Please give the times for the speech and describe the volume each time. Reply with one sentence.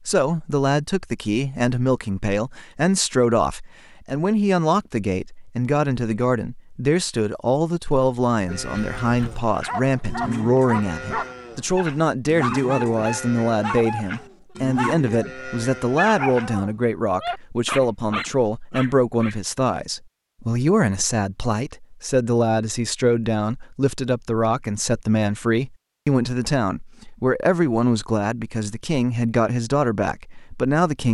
The speech can be heard from 0.1 to 31.1 s, at a steady volume.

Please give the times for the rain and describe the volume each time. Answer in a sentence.
You can't hear the rain here.